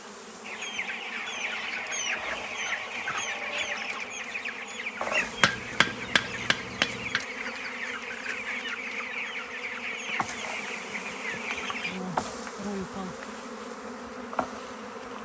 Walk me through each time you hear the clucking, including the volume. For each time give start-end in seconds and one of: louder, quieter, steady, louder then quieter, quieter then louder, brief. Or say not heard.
0.4-12.0 steady.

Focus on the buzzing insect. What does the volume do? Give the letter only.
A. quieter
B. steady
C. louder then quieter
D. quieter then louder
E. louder
E.